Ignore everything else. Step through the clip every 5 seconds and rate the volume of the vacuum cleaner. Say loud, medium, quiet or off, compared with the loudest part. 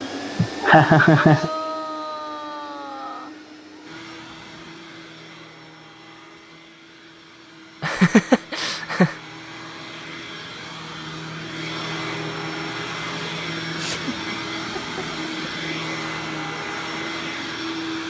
loud, quiet, loud, loud.